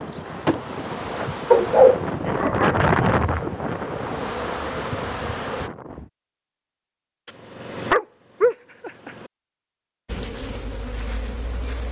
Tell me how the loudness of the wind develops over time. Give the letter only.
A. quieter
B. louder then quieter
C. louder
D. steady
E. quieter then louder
B.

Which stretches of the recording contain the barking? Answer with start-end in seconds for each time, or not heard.
1.5-3.5, 7.2-9.3.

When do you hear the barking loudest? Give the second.
2 s.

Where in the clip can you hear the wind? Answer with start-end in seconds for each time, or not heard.
0.0-6.1.